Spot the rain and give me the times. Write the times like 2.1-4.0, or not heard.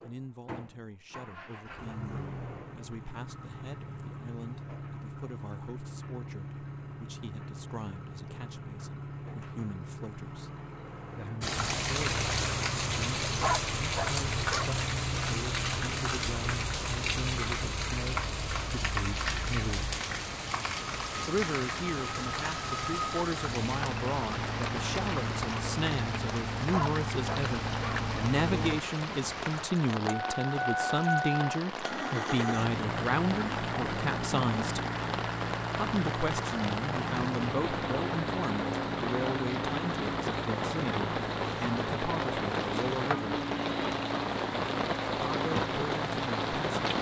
11.4-46.9.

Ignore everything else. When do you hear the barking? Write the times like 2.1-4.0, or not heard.
13.4-14.8, 26.7-28.1.